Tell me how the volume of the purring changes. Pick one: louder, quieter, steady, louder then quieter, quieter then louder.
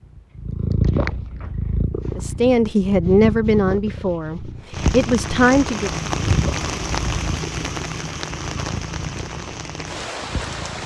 quieter.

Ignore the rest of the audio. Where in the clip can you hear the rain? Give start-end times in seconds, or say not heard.
4.7-10.8.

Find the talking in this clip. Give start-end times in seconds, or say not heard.
2.1-5.9.